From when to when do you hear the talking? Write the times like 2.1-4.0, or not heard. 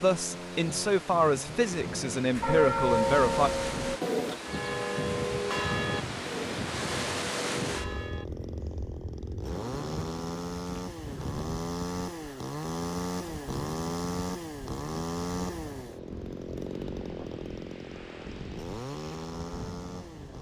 0.0-3.5.